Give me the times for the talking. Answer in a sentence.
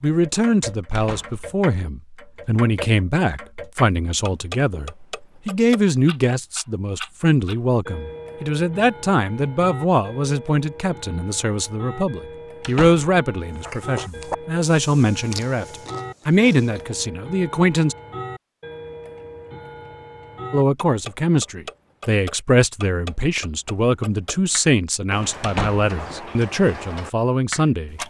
You can hear the talking from 0.0 to 17.9 s and from 20.5 to 28.0 s.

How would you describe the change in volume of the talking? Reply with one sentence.
The volume of the talking stays about the same.